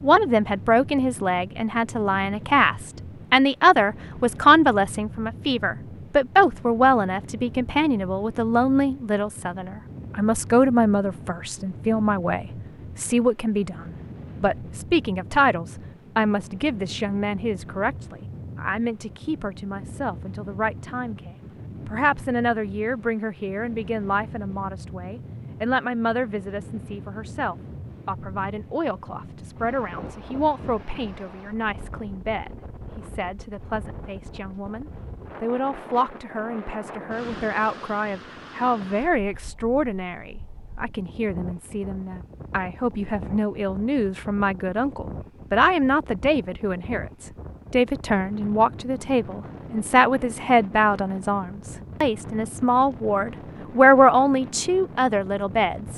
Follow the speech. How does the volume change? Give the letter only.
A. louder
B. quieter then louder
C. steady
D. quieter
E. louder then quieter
B.